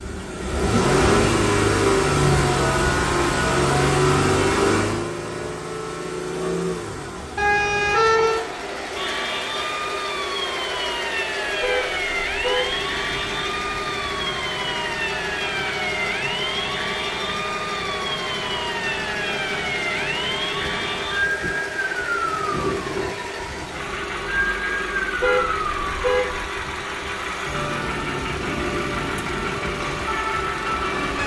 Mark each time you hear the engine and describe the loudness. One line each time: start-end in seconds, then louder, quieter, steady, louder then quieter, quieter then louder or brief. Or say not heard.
0.0-31.2 quieter.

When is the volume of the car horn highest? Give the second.
8 s.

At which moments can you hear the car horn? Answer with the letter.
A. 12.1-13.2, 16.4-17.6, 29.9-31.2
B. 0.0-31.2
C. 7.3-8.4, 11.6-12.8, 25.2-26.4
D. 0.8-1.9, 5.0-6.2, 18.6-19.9
C.